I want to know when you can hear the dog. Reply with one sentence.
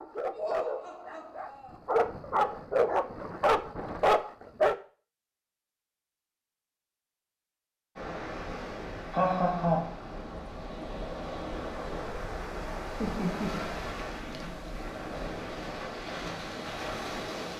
The dog can be heard from 0.0 to 4.8 s.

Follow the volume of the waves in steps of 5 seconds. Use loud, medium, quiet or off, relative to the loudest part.
off, loud, loud, loud.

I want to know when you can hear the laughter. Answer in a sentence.
You can hear the laughter from 0.3 to 1.8 s, from 9.1 to 9.9 s and from 13.0 to 14.6 s.